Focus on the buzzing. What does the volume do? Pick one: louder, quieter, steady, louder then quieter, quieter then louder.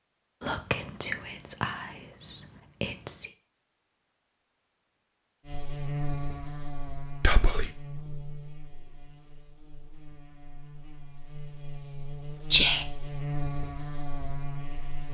quieter then louder.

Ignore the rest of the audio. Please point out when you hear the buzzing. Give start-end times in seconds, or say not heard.
5.5-15.0.